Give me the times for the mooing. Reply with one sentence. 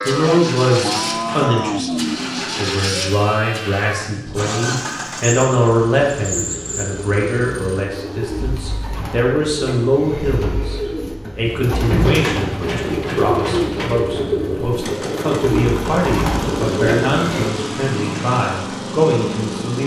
You can hear the mooing from 0.0 to 2.9 s.